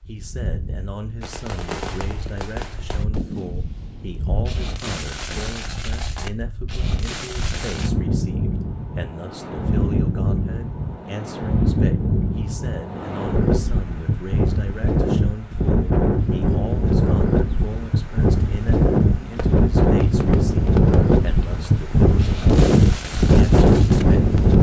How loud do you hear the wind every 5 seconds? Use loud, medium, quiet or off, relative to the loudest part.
quiet, medium, medium, loud, loud.